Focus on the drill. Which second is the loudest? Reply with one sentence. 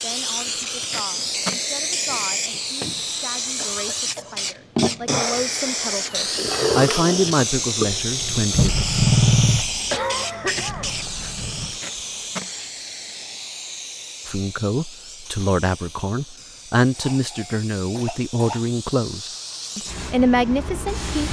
The volume of the drill peaks at 9 seconds.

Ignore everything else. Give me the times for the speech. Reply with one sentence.
You can hear the speech from 0.0 to 8.8 s and from 14.2 to 21.1 s.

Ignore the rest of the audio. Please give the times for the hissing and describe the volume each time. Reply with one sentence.
You can hear the hissing from 0.0 to 21.2 s, getting quieter.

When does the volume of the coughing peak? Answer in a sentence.
The volume of the coughing peaks at 10 seconds.